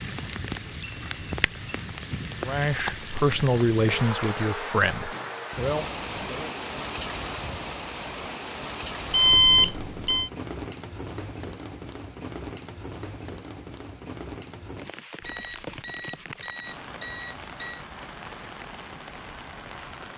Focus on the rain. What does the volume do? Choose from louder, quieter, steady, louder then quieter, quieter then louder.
quieter.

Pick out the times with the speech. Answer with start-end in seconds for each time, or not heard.
2.4-6.5.